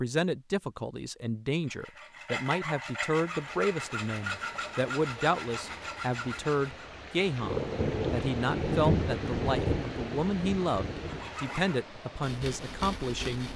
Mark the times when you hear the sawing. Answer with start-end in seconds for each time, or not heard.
1.6-6.9, 11.0-13.5.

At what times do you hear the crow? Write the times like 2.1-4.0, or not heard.
not heard.